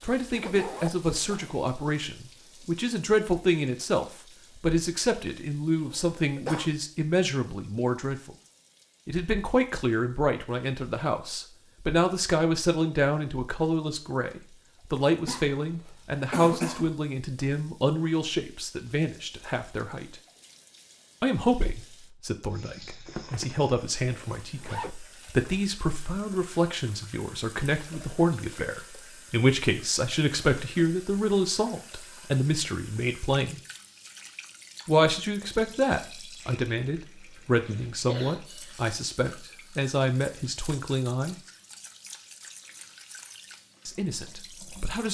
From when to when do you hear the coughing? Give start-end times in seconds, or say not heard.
5.9-6.7, 15.2-16.9, 37.6-38.6.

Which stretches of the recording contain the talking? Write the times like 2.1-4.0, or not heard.
0.0-8.3, 9.1-20.2, 21.2-33.6, 34.9-41.4, 43.9-45.0.